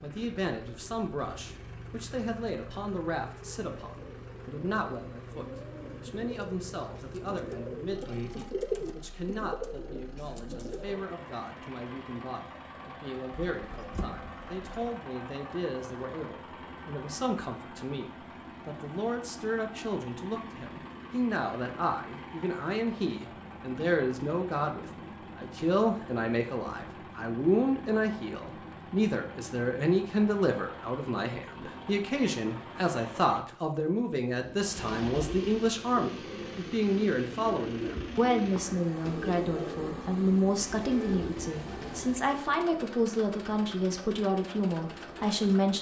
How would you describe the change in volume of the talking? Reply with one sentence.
The volume of the talking goes up.